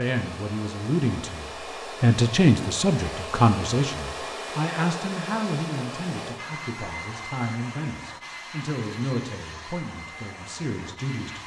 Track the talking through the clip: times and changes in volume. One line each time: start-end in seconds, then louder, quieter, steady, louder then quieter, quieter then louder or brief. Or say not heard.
0.0-11.4 quieter.